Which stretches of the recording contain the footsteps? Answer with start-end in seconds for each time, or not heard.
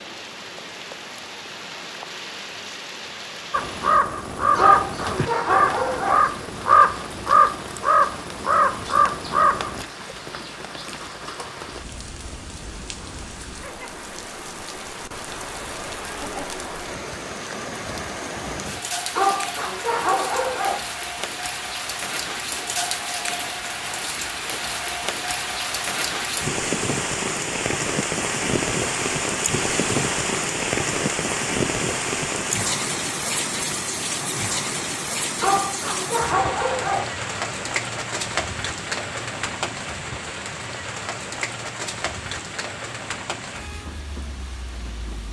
not heard.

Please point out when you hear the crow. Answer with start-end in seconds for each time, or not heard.
3.5-9.8.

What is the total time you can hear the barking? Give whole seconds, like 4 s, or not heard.
5 s.